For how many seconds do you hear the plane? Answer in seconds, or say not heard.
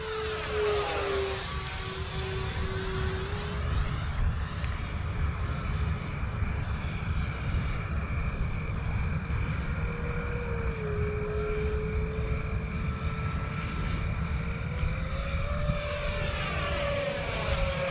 18 s.